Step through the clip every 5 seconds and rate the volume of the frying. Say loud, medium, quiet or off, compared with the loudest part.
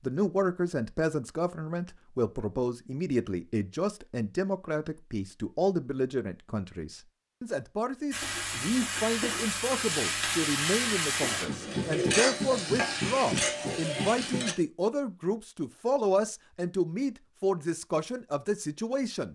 off, loud, loud, off.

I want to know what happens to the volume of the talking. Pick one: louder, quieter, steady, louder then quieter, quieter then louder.
steady.